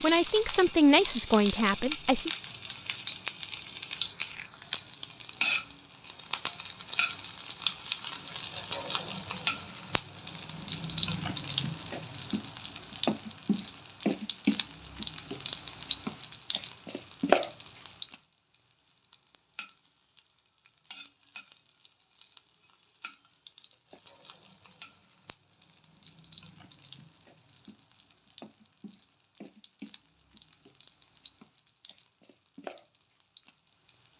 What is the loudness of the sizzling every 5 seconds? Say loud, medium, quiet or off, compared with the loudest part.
loud, loud, loud, loud, quiet, quiet, quiet.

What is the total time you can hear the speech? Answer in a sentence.
The speech can be heard for 2 seconds in total.